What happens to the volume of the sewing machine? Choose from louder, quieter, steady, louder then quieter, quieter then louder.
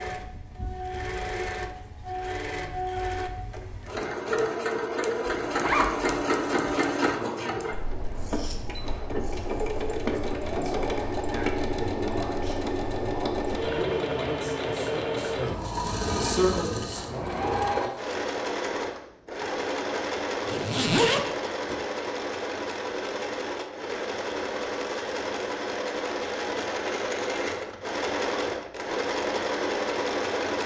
steady.